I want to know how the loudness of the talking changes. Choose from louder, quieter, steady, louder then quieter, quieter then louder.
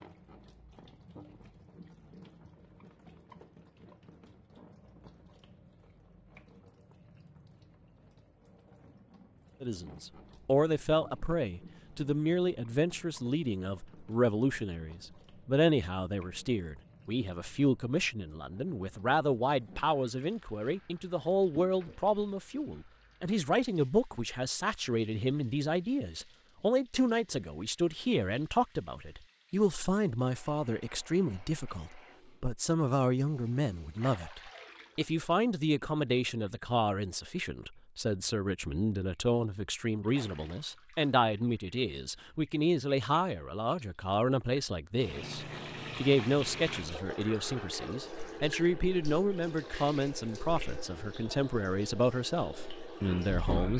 steady.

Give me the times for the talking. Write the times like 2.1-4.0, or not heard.
9.6-53.7.